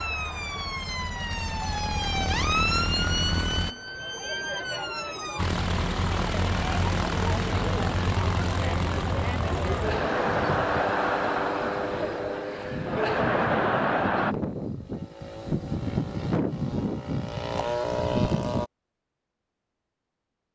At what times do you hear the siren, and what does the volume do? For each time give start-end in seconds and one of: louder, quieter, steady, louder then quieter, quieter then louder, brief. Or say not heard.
0.0-5.4 louder then quieter.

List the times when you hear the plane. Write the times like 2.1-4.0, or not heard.
0.0-3.8, 5.3-18.7.